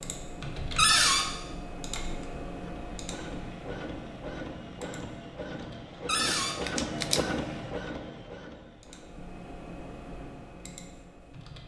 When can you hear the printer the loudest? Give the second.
7 s.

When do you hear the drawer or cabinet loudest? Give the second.
1 s.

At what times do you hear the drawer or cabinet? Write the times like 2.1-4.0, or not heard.
0.8-1.2, 6.0-6.5.